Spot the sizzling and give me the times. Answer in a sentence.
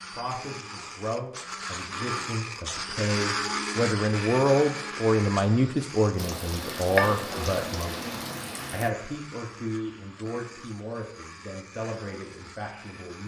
The sizzling can be heard from 6.2 to 8.9 s.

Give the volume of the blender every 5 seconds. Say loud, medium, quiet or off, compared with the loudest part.
loud, medium, quiet.